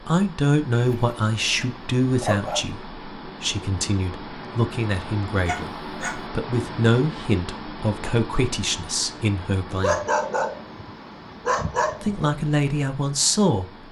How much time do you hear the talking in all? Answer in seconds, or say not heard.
12 s.